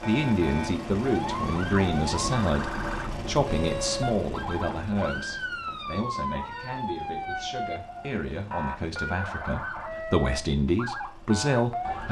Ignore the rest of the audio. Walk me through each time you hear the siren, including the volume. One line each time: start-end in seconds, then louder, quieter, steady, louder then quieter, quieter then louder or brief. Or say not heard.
0.0-12.0 steady.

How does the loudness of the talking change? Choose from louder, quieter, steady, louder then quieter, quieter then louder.
quieter then louder.